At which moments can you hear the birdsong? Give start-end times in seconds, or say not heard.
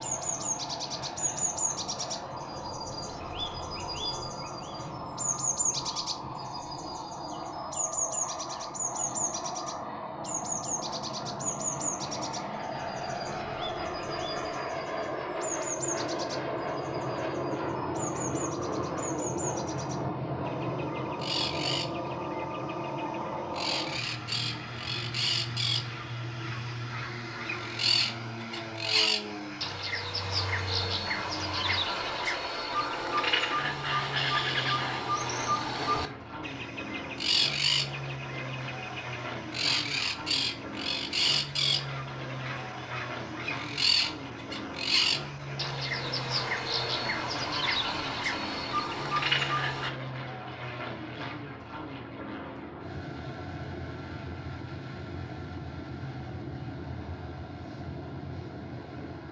0.0-49.9.